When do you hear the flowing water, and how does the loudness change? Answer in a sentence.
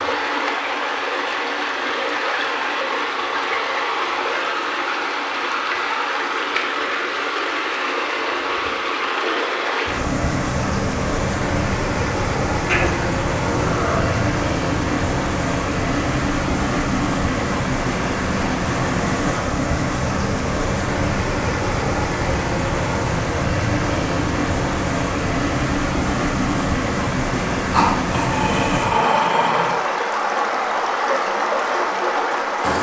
You can hear the flowing water from 0.0 to 32.7 s, at a steady volume.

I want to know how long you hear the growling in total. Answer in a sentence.
The growling can be heard for 4 seconds in total.